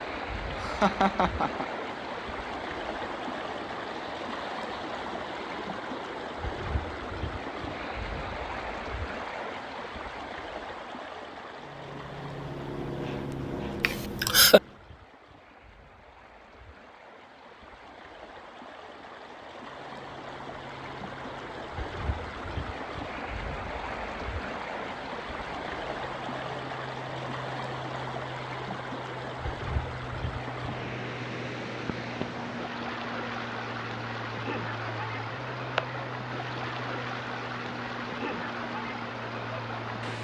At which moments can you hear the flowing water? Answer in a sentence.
The flowing water can be heard from 0.0 to 40.1 s.